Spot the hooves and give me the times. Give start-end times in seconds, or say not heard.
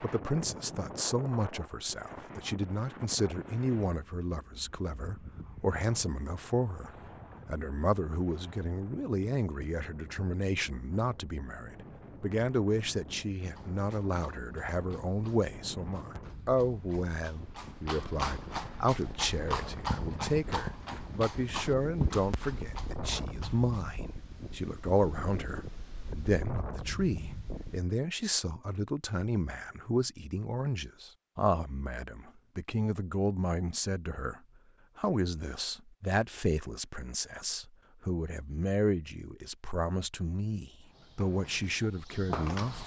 13.5-23.8, 40.9-42.8.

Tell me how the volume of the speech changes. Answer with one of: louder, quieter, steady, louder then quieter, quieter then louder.
steady.